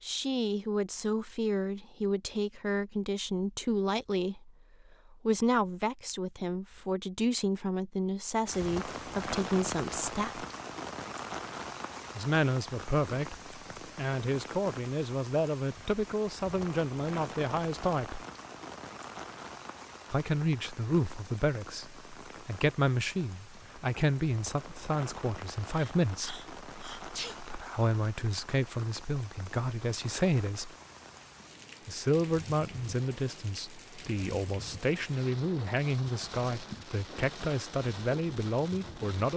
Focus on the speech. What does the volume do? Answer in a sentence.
The loudness of the speech stays about the same.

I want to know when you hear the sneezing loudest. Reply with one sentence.
The volume of the sneezing peaks at 27 seconds.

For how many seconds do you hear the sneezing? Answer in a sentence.
The sneezing can be heard for 2 seconds in total.